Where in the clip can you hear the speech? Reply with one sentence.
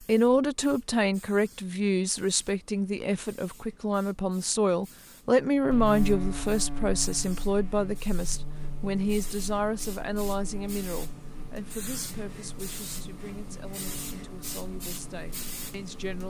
You can hear the speech from 0.0 to 16.2 s.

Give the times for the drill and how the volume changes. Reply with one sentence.
You can't hear the drill here.